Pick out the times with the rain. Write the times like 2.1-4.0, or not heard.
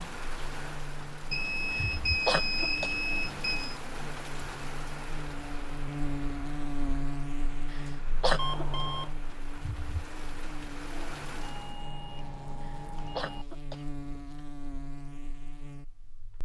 0.0-11.8.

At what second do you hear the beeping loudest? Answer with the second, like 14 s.
2 s.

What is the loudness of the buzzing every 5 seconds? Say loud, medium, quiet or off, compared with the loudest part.
medium, loud, medium, medium.